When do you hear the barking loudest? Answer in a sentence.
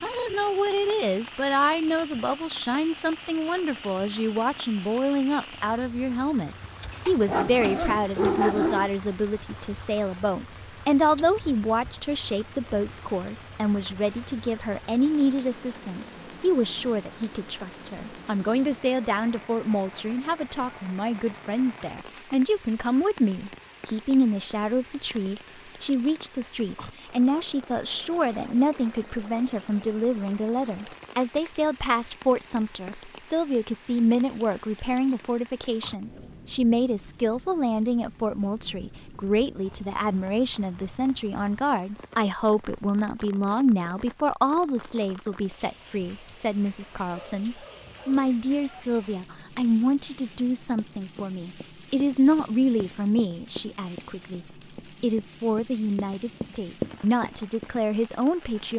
The loudest moment of the barking is at 8 seconds.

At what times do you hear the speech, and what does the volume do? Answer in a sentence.
You can hear the speech from 0.0 to 58.7 s, at a steady volume.